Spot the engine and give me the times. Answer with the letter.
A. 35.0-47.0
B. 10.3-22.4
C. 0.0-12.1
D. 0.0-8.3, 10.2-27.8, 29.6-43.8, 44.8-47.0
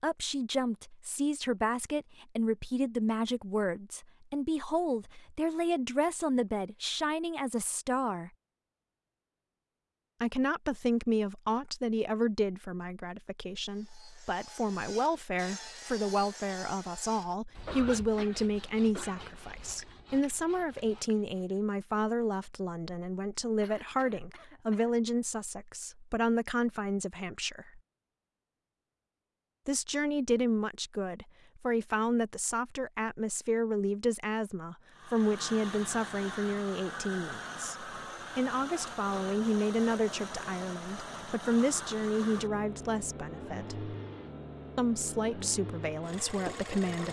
A.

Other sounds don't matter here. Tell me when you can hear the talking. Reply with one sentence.
You can hear the talking from 0.0 to 8.3 s, from 10.2 to 27.8 s, from 29.6 to 43.8 s and from 44.8 to 47.0 s.